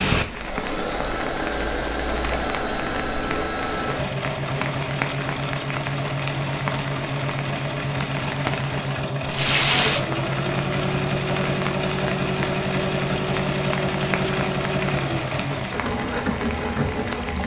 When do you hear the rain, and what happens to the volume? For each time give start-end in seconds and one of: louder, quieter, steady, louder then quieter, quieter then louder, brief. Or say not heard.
0.0-17.4 louder then quieter.